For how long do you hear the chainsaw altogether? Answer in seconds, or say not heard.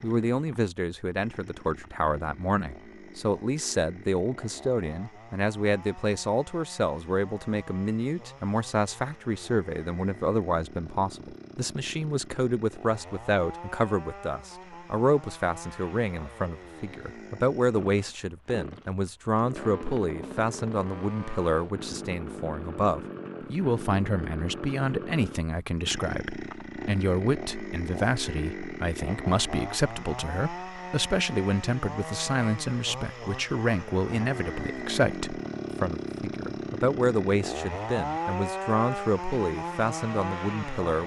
41 s.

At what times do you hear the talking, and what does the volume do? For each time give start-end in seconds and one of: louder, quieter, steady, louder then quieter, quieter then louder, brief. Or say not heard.
0.0-41.0 steady.